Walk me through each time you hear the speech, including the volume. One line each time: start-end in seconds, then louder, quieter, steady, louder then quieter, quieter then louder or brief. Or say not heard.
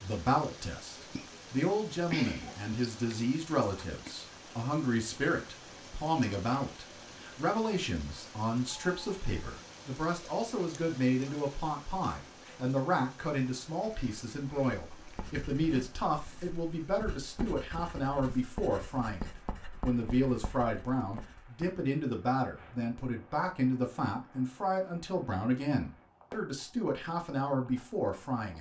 0.0-28.5 steady.